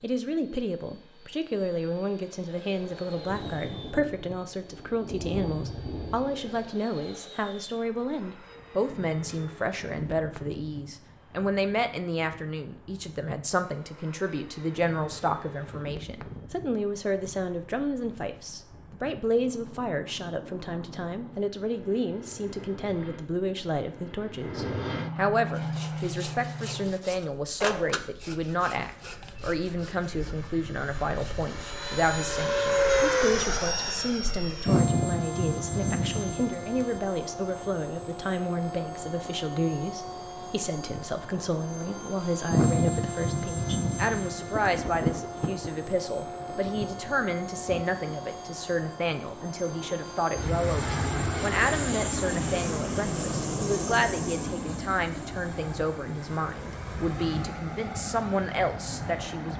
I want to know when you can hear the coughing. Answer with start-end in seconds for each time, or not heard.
not heard.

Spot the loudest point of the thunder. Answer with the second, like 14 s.
45 s.